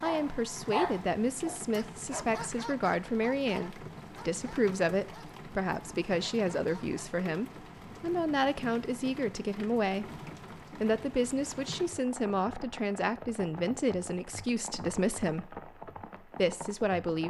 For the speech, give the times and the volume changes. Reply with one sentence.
The speech can be heard from 0.0 to 10.1 s, at a steady volume; from 10.8 to 15.6 s, at a steady volume; and briefly from 16.4 to 17.2 s.